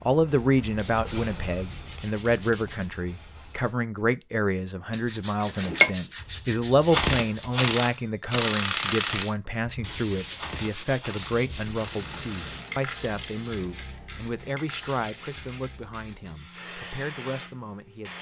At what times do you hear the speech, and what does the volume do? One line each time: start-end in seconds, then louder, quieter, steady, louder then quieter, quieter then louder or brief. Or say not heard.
0.0-18.1 quieter.